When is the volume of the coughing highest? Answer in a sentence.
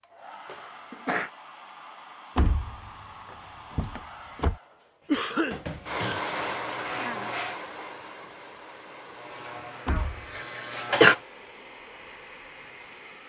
The loudest moment of the coughing is at 11 seconds.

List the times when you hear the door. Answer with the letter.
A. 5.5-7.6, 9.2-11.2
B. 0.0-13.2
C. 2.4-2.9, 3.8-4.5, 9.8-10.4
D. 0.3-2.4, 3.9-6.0
C.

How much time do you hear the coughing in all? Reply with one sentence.
You can hear the coughing for 3 seconds altogether.